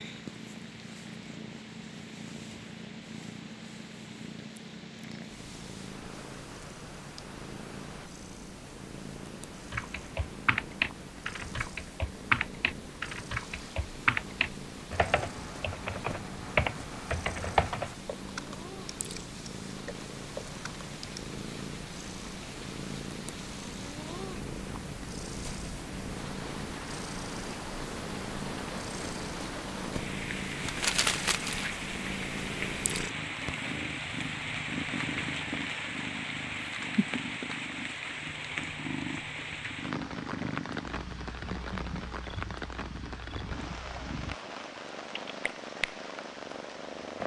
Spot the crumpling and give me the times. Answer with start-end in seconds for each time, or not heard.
30.6-31.7.